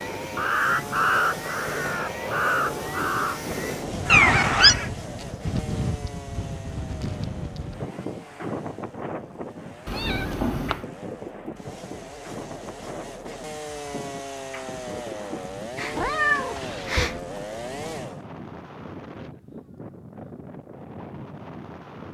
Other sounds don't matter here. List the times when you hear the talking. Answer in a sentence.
You can't hear the talking here.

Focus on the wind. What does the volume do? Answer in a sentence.
The volume of the wind goes down.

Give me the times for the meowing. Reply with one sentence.
The meowing can be heard from 4.0 to 4.8 s, from 9.8 to 10.8 s and from 15.8 to 17.2 s.